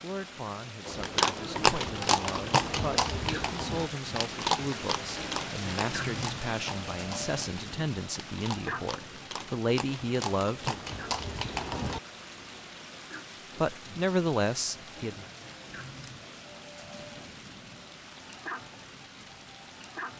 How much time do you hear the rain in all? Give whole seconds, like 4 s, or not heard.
20 s.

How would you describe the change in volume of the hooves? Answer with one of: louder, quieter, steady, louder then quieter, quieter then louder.
quieter then louder.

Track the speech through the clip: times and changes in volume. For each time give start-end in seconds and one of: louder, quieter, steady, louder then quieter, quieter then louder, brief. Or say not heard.
0.0-10.8 louder
13.6-15.2 brief.